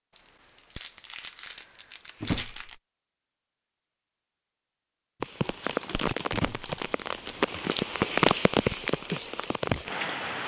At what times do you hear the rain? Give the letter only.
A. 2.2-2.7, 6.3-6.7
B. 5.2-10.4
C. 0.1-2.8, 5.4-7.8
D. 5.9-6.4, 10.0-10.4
B.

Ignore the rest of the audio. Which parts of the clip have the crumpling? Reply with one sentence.
You can hear the crumpling from 0.1 to 2.8 s and from 5.4 to 7.8 s.